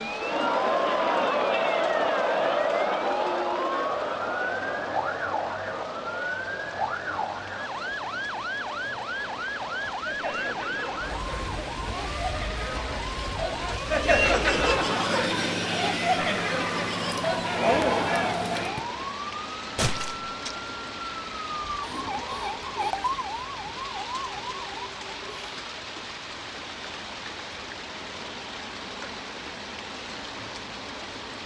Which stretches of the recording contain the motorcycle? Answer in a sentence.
The motorcycle can't be heard in this clip.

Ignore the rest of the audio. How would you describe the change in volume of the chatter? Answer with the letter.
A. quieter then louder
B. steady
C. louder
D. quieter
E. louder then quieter
A.